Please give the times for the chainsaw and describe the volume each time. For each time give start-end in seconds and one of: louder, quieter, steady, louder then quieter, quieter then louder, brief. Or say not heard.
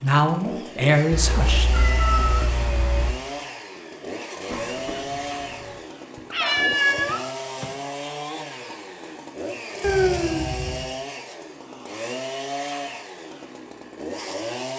0.0-14.7 steady.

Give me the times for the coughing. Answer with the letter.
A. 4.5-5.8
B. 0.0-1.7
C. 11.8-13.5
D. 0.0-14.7
A.